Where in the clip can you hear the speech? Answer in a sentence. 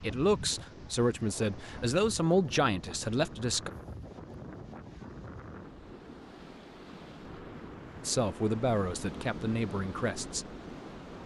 The speech can be heard from 0.0 to 3.7 s and from 8.1 to 10.4 s.